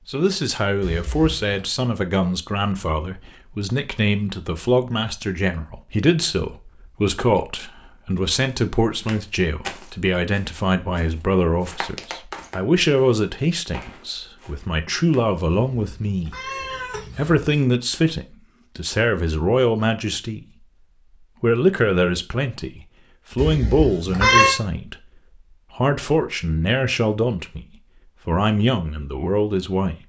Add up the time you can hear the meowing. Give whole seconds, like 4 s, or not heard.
4 s.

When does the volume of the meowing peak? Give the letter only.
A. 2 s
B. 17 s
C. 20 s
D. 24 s
D.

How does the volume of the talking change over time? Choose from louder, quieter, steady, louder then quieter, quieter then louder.
steady.